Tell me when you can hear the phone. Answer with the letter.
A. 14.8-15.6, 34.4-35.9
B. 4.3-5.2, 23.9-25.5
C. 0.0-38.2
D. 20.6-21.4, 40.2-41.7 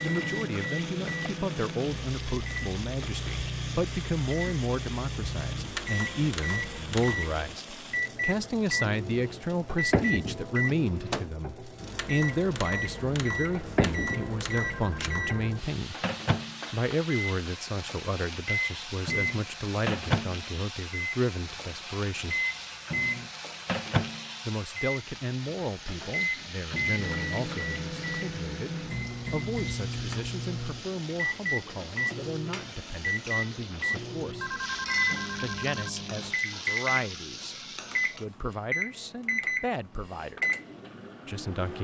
A.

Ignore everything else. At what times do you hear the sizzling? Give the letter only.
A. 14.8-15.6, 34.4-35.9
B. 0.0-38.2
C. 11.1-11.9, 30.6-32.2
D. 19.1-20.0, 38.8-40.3
B.